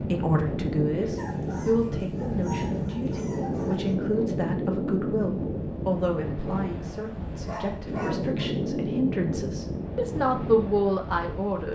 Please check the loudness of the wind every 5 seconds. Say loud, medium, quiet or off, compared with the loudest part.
loud, loud, medium.